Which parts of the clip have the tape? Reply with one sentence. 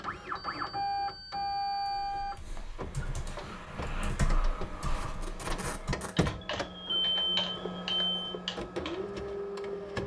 The tape can be heard from 5.0 to 6.3 s.